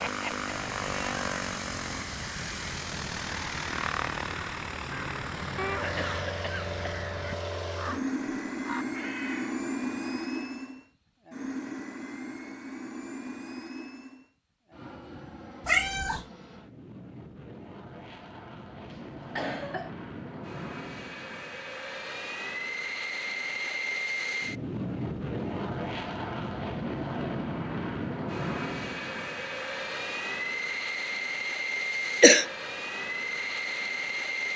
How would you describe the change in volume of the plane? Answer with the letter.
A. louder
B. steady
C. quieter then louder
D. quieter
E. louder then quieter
C.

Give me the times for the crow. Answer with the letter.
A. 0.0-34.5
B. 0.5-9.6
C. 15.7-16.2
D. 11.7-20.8
B.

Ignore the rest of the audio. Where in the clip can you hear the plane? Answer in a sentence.
The plane can be heard from 0.0 to 34.5 s.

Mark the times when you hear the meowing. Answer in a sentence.
You can hear the meowing from 15.7 to 16.2 s.